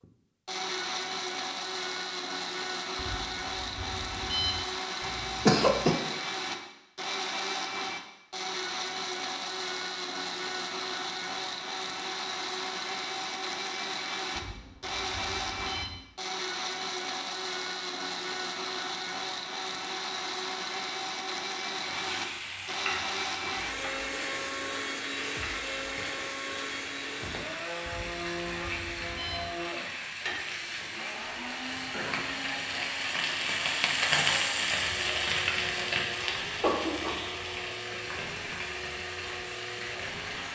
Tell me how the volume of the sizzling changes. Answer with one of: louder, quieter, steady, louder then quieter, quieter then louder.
louder then quieter.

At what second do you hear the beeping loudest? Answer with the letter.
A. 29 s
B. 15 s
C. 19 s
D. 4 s
D.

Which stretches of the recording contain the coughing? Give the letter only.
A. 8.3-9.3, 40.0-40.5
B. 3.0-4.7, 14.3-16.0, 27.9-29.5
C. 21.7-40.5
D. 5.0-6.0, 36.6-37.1
D.